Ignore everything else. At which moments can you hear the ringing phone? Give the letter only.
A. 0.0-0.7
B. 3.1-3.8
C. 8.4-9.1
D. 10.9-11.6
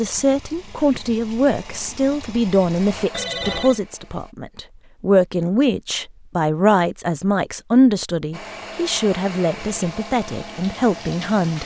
B.